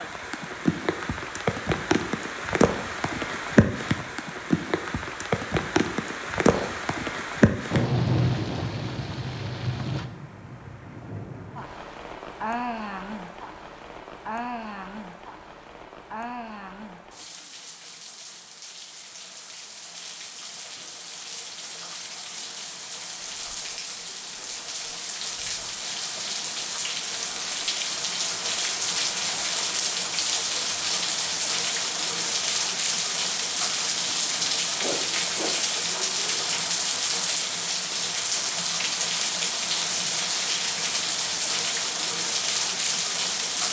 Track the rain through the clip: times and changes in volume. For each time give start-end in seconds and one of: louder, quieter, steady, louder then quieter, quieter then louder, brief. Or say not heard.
0.0-43.6 quieter then louder.